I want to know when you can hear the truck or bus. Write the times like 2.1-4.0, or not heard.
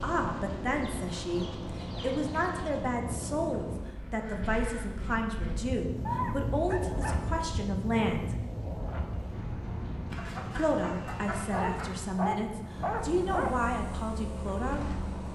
0.0-3.9, 12.7-15.2.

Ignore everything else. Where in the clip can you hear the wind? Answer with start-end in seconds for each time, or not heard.
0.0-15.2.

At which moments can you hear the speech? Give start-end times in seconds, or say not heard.
0.0-8.4, 10.6-15.0.